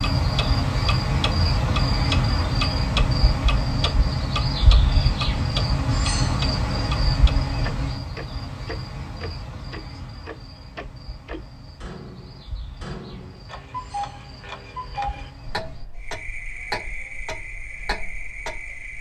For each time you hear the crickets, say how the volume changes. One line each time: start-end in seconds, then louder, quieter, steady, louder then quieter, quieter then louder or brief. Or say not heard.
0.0-18.9 quieter then louder.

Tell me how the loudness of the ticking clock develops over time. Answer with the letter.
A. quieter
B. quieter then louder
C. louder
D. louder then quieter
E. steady
A.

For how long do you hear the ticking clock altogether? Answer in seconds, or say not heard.
19 s.